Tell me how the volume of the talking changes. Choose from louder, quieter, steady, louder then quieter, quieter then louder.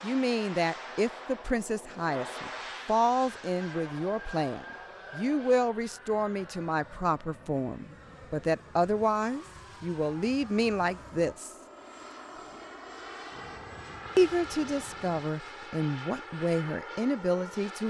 steady.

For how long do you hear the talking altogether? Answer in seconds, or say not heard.
15 s.